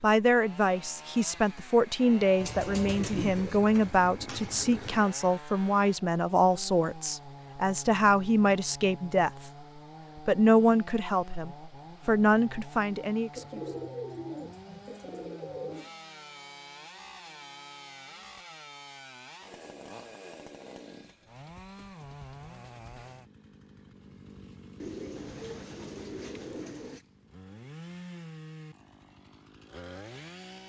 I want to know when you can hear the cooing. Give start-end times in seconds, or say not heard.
2.4-5.0, 13.3-15.9, 24.8-27.1.